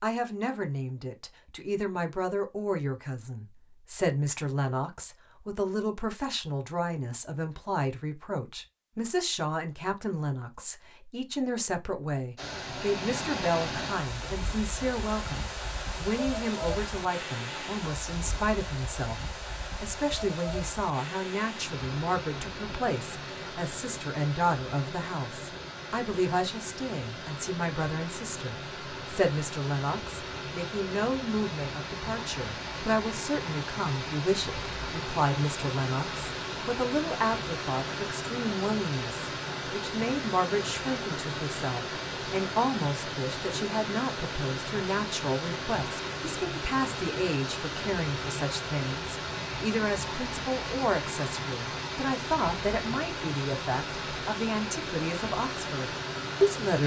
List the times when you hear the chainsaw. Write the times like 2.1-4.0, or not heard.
not heard.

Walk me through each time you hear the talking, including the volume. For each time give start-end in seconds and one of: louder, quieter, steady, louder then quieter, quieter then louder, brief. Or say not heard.
0.0-56.8 steady.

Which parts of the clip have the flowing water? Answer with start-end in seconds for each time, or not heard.
12.3-56.8.